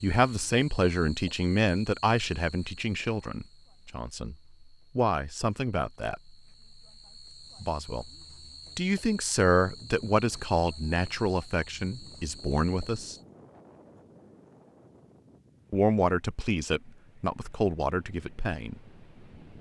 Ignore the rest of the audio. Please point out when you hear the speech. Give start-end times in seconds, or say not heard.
0.0-4.3, 5.0-6.3, 7.6-8.1, 8.8-13.2, 15.7-18.8.